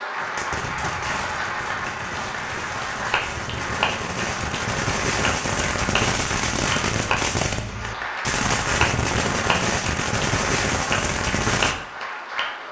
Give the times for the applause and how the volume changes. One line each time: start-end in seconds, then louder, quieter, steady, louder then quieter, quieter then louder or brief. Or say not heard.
0.0-12.6 steady.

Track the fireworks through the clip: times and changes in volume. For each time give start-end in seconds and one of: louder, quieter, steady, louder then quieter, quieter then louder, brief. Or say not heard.
0.1-11.8 louder.